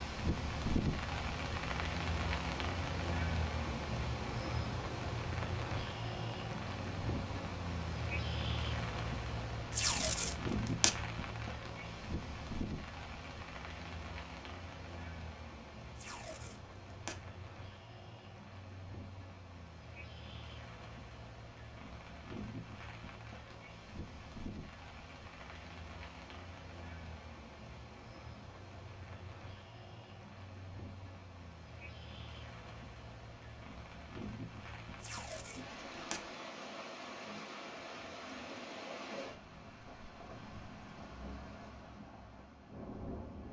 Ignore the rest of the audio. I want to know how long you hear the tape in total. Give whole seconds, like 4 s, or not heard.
4 s.